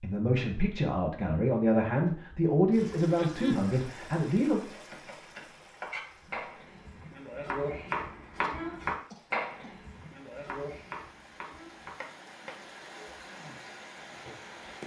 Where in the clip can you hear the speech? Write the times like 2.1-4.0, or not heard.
0.0-4.6.